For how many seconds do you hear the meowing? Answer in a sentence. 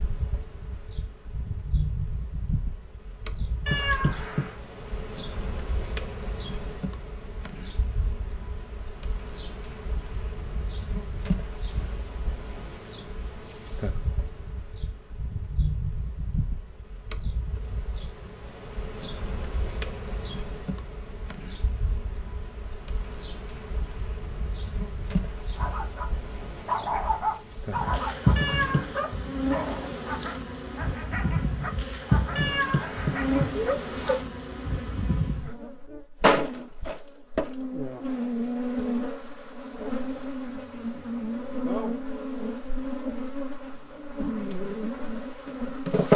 You can hear the meowing for 3 seconds altogether.